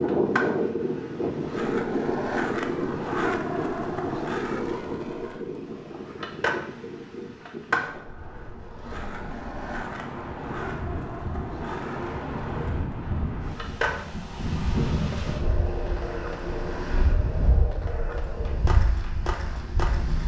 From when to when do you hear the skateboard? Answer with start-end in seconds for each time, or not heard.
0.0-20.2.